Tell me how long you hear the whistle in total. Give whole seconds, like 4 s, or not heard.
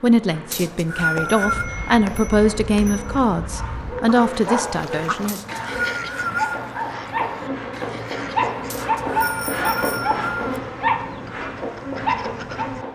4 s.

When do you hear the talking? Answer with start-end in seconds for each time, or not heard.
0.0-5.4.